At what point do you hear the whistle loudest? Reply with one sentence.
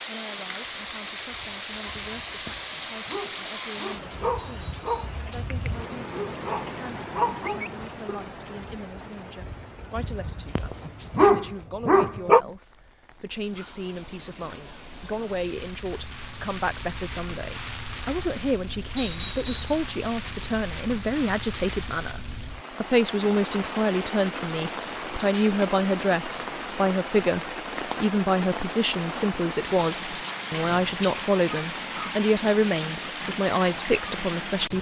The loudest moment of the whistle is at 19 seconds.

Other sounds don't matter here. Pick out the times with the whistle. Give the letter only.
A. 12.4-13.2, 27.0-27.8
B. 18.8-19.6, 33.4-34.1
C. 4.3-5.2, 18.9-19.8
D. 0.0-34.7
C.